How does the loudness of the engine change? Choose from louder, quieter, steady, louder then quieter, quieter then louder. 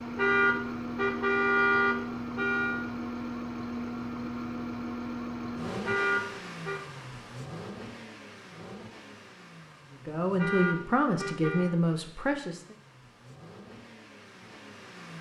quieter.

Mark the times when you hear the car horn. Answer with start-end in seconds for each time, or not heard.
0.1-2.9, 5.8-6.8, 10.3-11.8.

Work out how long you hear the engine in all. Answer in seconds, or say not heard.
15 s.